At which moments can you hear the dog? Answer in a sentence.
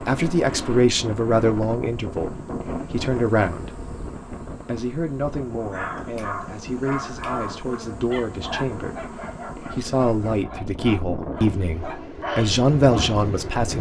You can hear the dog from 5.5 to 13.2 s.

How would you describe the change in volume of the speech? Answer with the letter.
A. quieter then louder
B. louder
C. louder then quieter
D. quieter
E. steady
A.